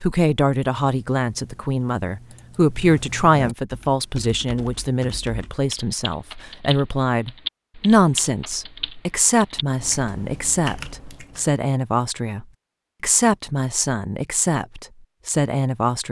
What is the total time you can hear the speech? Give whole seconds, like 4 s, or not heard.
16 s.